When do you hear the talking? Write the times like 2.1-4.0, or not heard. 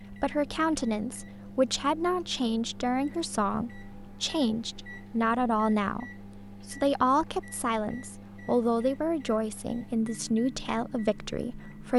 0.1-11.9.